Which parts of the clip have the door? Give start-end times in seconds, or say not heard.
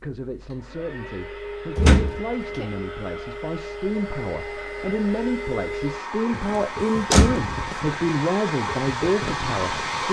1.8-2.6, 7.1-7.5.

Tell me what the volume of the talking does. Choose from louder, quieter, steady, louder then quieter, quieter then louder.
louder.